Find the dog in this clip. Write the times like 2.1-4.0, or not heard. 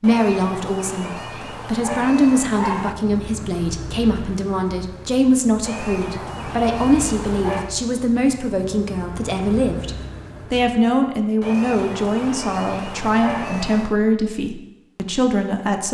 0.0-3.0, 5.6-7.7, 11.4-13.9.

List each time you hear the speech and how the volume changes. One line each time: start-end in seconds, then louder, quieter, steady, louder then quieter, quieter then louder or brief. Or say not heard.
0.0-15.8 steady.